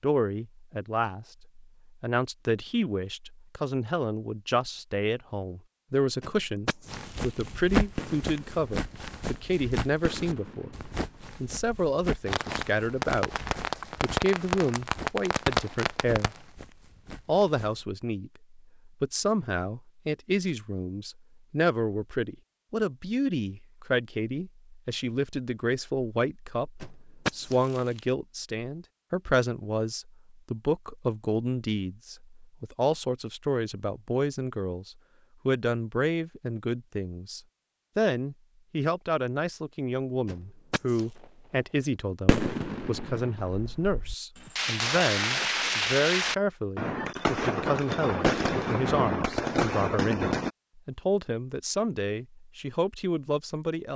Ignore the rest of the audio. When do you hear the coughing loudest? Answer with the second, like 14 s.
27 s.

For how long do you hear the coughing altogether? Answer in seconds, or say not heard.
3 s.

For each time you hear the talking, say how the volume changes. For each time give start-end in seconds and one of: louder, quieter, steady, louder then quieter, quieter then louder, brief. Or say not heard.
0.0-16.4 steady
17.2-53.9 steady.